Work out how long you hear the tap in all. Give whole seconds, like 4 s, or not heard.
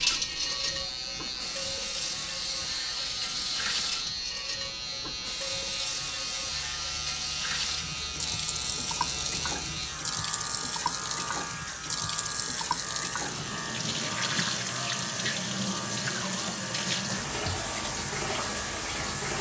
19 s.